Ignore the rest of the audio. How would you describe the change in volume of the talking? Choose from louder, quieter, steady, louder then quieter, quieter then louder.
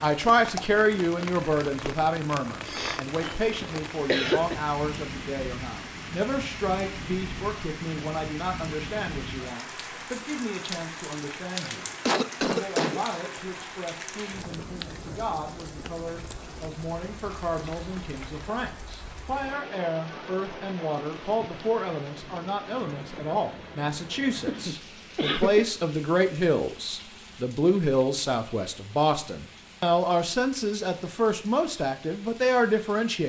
quieter then louder.